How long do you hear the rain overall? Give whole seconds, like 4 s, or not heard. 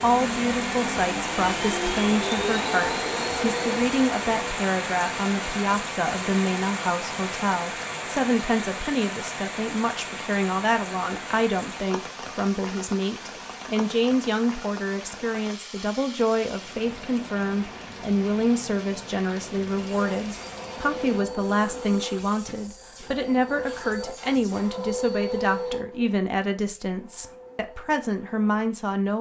21 s.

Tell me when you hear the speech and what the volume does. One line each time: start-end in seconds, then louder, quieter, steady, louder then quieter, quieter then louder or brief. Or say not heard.
0.0-29.1 steady.